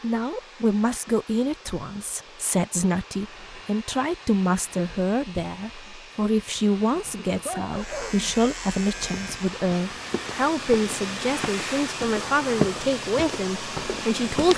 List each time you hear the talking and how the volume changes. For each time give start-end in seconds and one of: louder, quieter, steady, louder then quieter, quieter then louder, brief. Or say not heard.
0.0-14.5 steady.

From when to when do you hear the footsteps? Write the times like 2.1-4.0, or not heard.
8.8-14.5.